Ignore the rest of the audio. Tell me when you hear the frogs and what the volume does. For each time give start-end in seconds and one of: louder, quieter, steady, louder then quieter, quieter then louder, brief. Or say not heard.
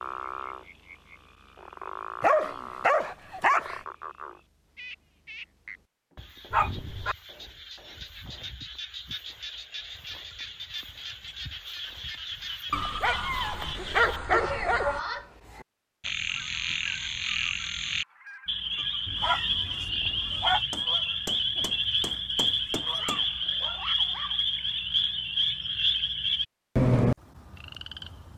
0.0-28.3 louder.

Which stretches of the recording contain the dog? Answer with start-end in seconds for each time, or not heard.
2.2-3.8, 6.5-7.2, 12.7-15.0, 19.1-20.6, 22.9-24.4.